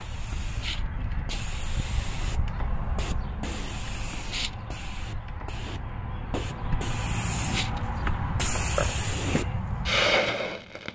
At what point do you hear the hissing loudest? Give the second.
10 s.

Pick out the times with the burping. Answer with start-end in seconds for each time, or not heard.
8.8-9.4.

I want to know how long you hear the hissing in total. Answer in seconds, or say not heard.
11 s.